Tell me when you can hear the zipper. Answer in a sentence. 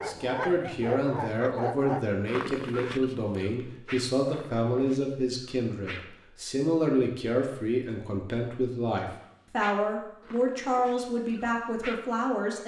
You can't hear the zipper here.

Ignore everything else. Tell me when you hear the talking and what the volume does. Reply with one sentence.
The talking can be heard from 0.0 to 12.6 s, at a steady volume.